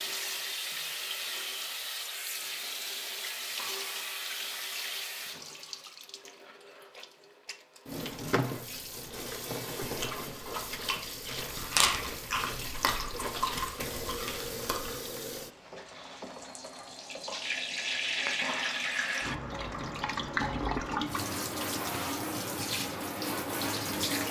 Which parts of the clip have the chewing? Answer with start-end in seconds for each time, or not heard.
9.8-15.0.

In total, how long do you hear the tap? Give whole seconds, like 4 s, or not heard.
24 s.